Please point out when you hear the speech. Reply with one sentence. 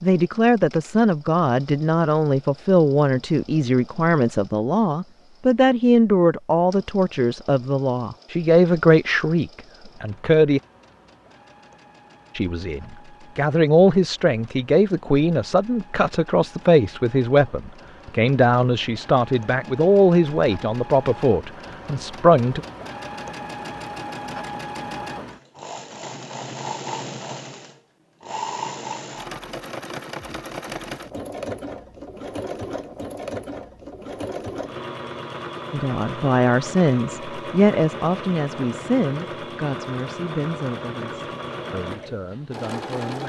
The speech can be heard from 0.0 to 10.6 s, from 12.3 to 22.6 s and from 35.7 to 43.2 s.